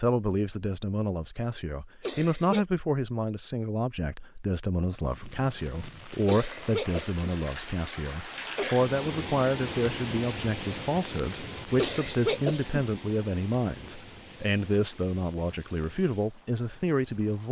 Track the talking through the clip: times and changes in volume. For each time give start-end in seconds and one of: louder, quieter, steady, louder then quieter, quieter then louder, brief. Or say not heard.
0.0-17.4 steady.